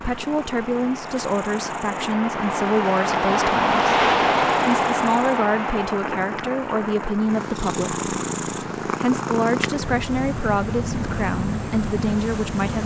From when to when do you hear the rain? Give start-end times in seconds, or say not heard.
0.0-12.8.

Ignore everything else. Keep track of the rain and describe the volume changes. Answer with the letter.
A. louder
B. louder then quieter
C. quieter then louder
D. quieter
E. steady
B.